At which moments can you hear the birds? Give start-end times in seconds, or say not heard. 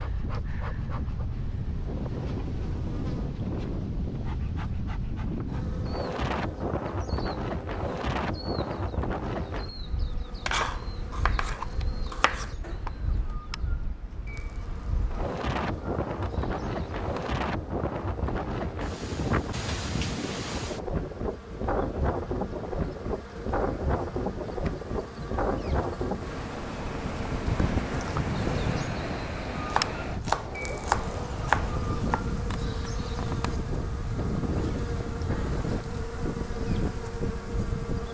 not heard.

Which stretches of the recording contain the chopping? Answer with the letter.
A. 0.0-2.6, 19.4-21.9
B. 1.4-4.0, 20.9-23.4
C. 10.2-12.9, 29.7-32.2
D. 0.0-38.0
C.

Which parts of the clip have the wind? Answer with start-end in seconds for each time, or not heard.
0.0-38.0.